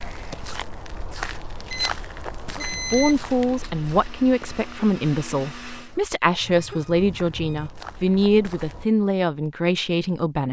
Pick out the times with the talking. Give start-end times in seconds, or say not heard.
2.5-10.4.